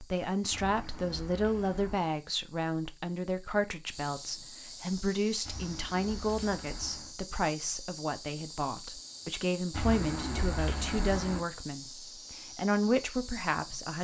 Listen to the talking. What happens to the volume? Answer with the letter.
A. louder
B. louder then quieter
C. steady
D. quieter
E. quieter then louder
C.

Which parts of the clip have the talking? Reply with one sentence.
The talking can be heard from 0.0 to 13.9 s.